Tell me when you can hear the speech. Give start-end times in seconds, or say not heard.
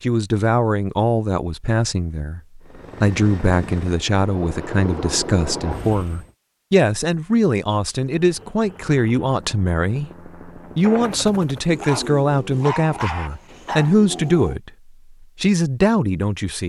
0.0-16.6.